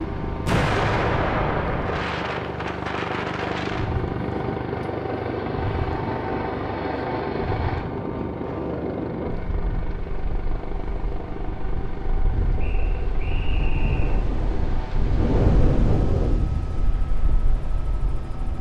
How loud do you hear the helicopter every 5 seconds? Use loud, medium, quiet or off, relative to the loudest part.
loud, loud, medium, medium.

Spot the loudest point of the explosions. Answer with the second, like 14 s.
1 s.